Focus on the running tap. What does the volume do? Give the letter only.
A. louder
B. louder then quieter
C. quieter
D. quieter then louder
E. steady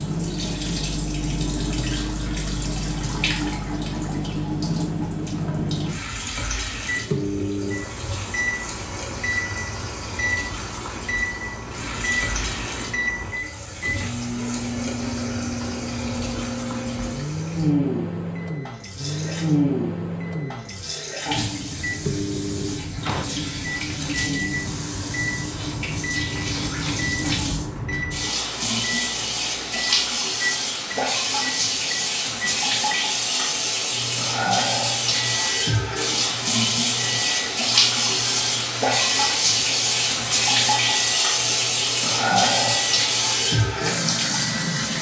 A.